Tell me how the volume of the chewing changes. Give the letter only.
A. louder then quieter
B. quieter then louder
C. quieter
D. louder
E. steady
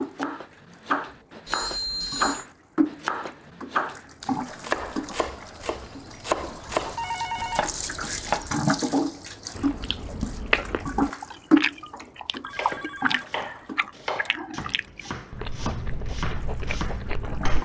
C.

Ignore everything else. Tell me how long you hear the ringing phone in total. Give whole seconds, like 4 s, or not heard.
3 s.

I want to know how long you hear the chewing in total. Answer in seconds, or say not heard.
8 s.